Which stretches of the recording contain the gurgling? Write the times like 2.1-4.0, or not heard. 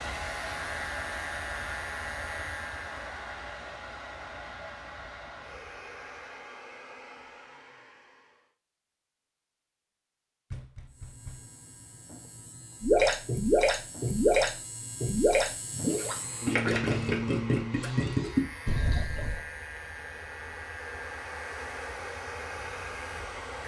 12.8-19.4.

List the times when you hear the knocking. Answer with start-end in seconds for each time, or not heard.
10.5-11.5.